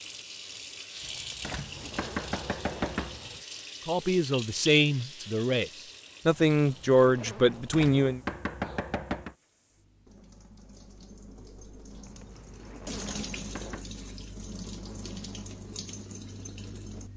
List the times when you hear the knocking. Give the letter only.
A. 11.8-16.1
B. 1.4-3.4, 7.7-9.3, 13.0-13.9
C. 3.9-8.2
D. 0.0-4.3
B.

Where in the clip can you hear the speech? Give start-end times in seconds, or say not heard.
3.9-8.2.